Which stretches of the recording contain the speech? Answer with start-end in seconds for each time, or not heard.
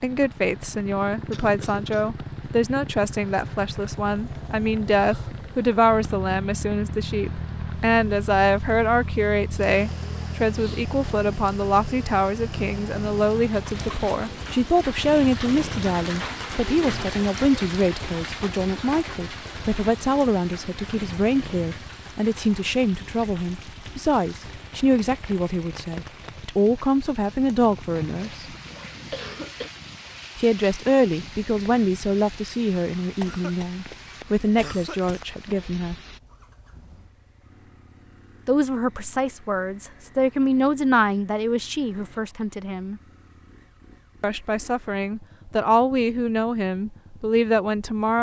0.0-28.6, 30.4-36.0, 38.5-43.0, 44.2-48.1.